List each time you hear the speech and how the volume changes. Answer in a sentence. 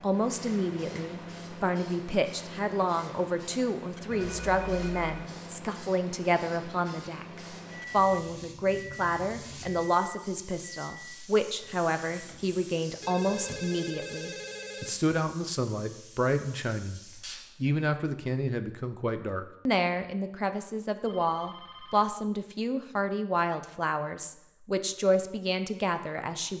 You can hear the speech from 0.0 to 26.5 s, at a steady volume.